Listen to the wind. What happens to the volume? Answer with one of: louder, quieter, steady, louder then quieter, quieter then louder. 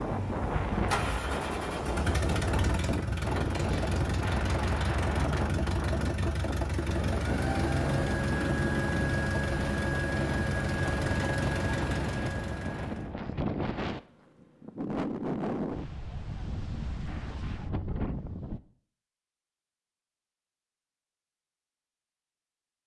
steady.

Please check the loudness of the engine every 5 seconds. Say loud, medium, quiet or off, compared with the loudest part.
loud, loud, loud, off, off.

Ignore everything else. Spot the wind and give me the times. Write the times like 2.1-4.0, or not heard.
0.0-18.6.